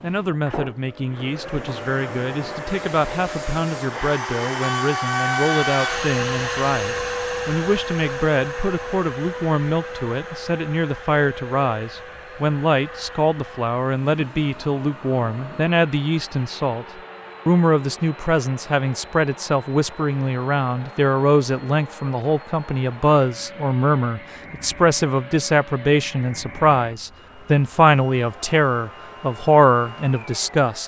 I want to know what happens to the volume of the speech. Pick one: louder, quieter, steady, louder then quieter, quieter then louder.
louder.